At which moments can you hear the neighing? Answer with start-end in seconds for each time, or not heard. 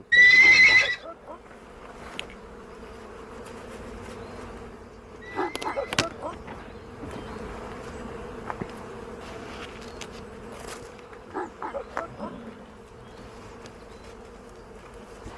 0.1-0.9, 5.2-7.2, 12.2-13.3.